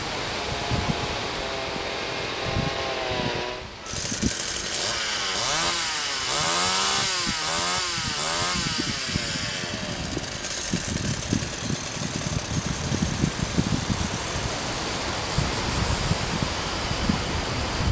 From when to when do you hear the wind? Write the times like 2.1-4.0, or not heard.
0.0-17.8.